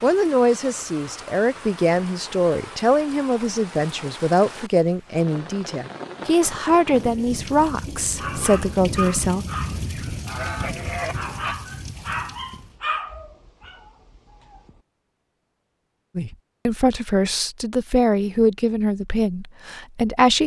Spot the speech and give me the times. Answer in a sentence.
The speech can be heard from 0.0 to 9.4 s and from 16.1 to 20.4 s.